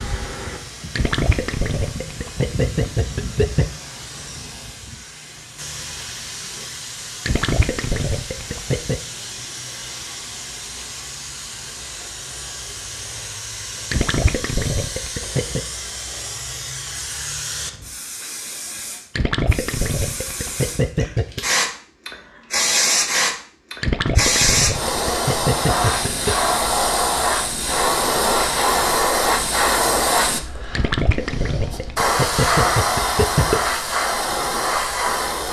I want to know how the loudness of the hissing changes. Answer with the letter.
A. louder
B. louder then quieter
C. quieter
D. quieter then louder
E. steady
A.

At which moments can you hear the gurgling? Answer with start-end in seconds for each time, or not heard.
0.9-3.7, 7.2-9.0, 13.9-15.6, 19.1-21.4, 23.8-26.4, 30.7-33.6.